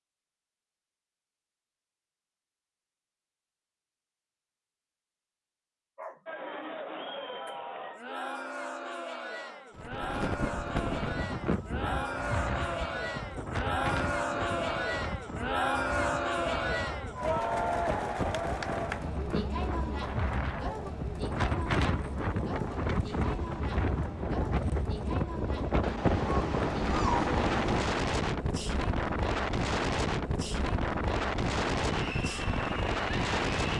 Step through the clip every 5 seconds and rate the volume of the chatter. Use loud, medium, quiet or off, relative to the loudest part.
off, medium, loud, loud, medium, medium, medium.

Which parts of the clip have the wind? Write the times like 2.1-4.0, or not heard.
9.8-33.7.